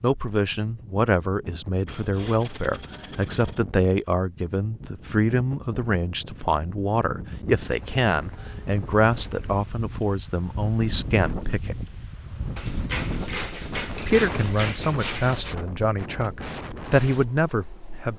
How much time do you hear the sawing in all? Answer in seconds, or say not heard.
5 s.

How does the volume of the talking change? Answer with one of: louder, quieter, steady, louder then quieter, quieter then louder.
steady.